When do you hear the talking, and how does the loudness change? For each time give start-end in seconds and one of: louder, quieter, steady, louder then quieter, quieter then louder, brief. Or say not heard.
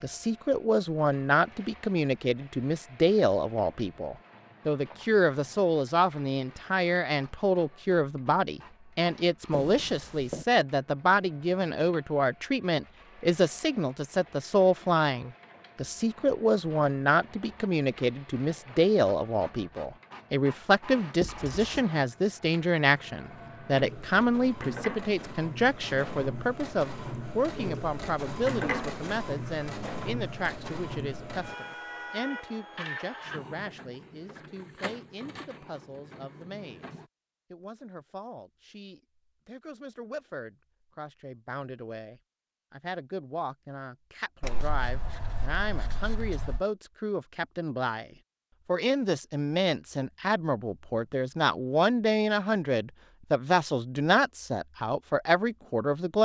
0.0-56.1 quieter then louder.